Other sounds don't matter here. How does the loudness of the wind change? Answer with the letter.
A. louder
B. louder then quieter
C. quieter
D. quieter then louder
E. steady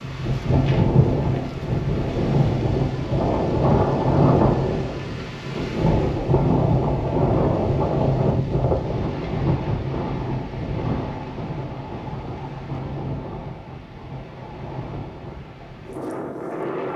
C.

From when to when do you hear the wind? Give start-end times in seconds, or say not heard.
0.0-16.9.